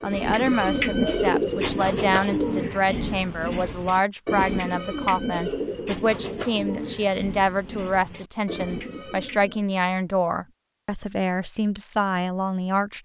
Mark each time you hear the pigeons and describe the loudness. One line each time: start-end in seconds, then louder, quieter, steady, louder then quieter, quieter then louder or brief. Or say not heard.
0.0-9.7 quieter.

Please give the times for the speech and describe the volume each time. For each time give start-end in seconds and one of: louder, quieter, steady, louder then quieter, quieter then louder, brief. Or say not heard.
0.0-12.9 steady.